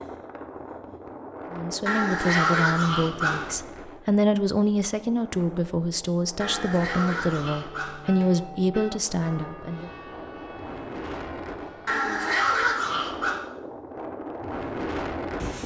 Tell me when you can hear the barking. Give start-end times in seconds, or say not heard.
1.9-3.5, 6.4-8.3, 11.8-13.4.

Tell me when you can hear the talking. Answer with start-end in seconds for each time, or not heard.
1.5-9.9.